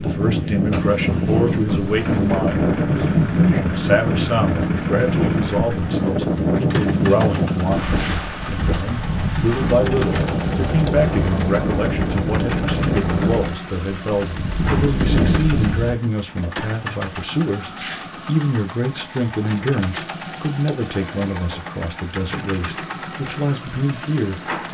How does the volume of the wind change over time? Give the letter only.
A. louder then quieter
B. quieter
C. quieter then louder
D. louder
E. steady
E.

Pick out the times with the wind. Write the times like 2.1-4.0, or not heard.
0.0-15.9.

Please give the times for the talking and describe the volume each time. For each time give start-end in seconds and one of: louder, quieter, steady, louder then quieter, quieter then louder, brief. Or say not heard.
0.0-24.6 steady.